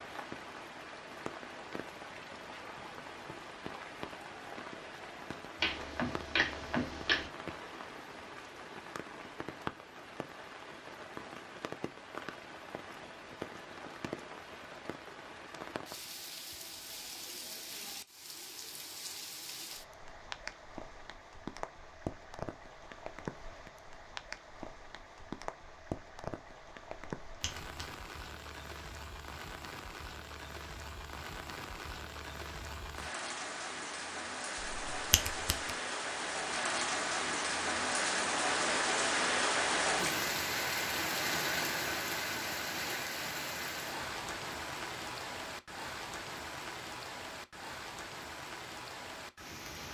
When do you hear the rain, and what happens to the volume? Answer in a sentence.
The rain can be heard from 0.0 to 49.9 s, getting louder.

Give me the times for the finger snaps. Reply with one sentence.
The finger snaps can be heard from 5.6 to 7.3 s, from 27.2 to 27.9 s and from 34.6 to 35.7 s.